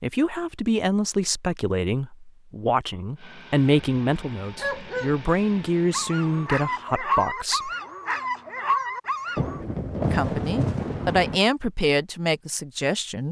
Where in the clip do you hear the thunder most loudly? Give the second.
10 s.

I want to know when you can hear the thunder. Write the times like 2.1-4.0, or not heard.
9.3-11.4.